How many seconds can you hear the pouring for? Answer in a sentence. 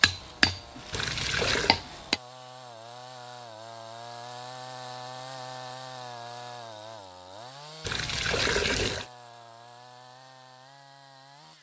You can hear the pouring for 2 seconds altogether.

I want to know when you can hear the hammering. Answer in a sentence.
You can hear the hammering from 0.0 to 2.2 s.